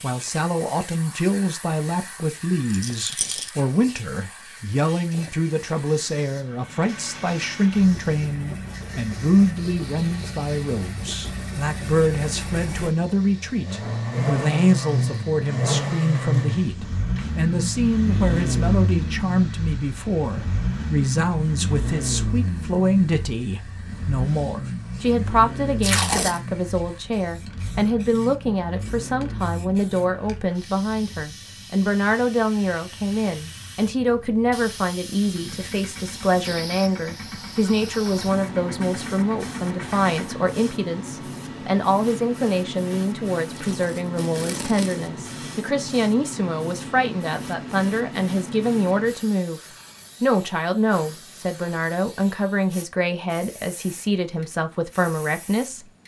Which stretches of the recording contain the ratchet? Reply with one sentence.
You can't hear the ratchet here.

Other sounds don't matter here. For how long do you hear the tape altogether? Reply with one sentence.
You can hear the tape for 2 seconds altogether.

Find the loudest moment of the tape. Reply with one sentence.
The loudest moment of the tape is at 26 seconds.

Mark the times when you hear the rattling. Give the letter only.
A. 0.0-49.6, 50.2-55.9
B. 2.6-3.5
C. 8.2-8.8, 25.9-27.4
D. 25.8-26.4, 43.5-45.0
B.